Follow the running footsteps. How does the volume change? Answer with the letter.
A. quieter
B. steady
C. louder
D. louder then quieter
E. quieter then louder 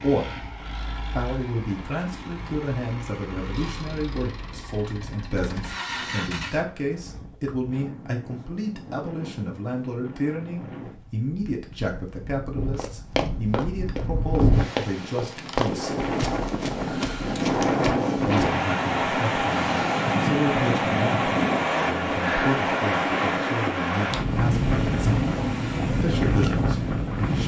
A.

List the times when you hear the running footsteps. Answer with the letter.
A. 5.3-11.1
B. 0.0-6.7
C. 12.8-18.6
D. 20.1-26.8
C.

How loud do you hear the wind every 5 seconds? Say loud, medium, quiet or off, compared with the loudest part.
quiet, quiet, medium, loud, loud, loud.